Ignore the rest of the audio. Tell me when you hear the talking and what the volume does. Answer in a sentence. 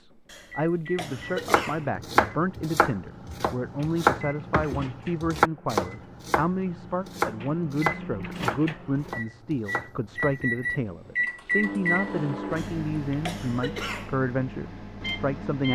The talking can be heard from 0.0 to 15.6 s, at a steady volume.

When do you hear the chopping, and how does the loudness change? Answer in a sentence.
The chopping can be heard from 1.0 to 10.6 s, getting quieter.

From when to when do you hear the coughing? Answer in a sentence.
The coughing can be heard from 0.2 to 1.9 s and from 12.6 to 14.2 s.